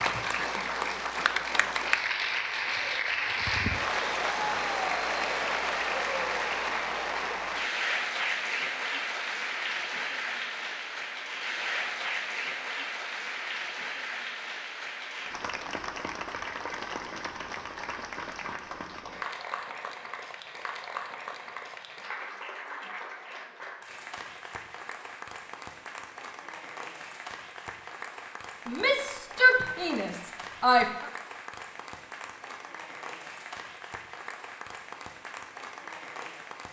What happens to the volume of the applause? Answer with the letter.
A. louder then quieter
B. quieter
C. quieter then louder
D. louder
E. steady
B.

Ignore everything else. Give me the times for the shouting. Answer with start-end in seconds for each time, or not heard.
28.6-31.1.